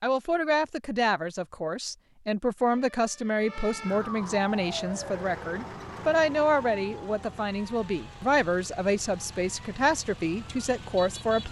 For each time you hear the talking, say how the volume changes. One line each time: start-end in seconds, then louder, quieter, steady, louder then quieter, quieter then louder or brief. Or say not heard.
0.0-11.4 steady.